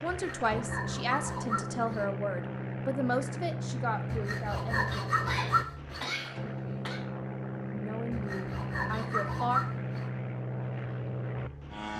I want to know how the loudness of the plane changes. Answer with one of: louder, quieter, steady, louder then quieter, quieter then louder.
steady.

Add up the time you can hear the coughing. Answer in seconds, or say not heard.
2 s.